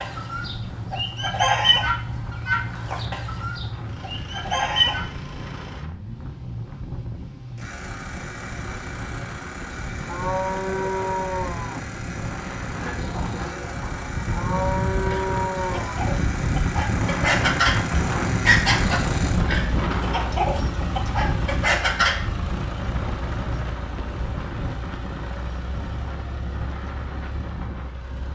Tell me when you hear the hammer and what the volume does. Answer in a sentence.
You can't hear the hammer here.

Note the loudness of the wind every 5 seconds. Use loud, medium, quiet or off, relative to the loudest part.
quiet, quiet, medium, loud, medium, medium.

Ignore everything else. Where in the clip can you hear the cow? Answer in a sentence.
You can hear the cow from 10.1 to 11.8 s and from 14.3 to 15.9 s.